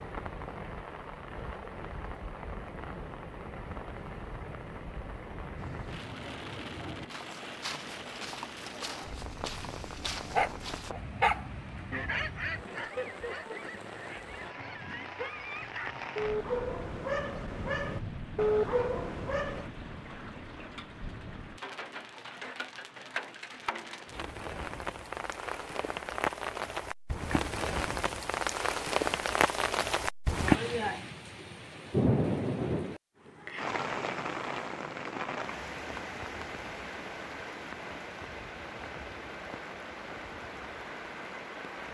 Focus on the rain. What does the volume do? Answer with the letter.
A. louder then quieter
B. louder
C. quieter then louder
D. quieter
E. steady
A.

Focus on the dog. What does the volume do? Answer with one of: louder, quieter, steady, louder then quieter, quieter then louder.
quieter then louder.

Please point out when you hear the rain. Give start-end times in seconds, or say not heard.
0.0-41.8.